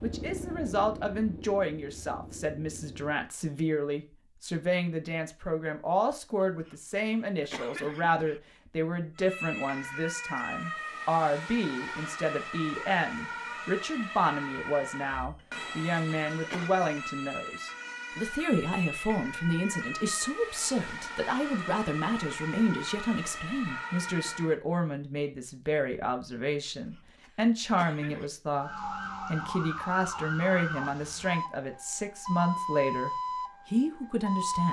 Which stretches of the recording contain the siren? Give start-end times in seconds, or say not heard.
9.2-24.6, 28.6-34.6.